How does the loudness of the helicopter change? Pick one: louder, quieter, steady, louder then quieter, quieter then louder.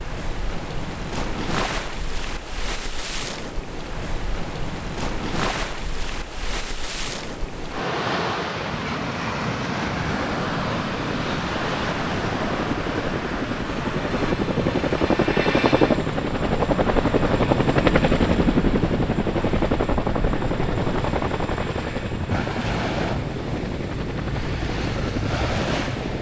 louder then quieter.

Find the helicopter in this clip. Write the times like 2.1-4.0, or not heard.
10.0-26.1.